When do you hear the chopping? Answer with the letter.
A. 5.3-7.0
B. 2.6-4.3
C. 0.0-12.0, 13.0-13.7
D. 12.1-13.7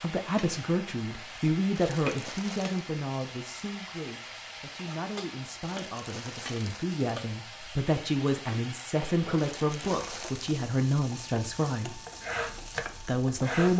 D.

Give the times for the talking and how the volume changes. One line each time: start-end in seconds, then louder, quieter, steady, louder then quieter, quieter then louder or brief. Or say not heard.
0.0-12.0 quieter then louder
13.0-13.7 brief.